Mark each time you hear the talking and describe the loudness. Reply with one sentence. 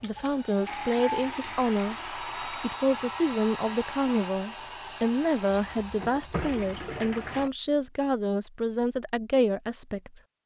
The talking can be heard from 0.0 to 10.2 s, at a steady volume.